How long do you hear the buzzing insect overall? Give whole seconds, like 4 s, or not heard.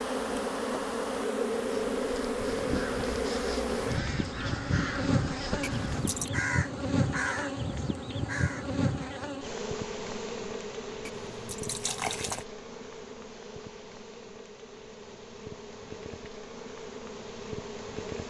18 s.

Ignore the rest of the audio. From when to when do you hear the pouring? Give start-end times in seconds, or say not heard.
5.6-6.3, 11.1-12.4.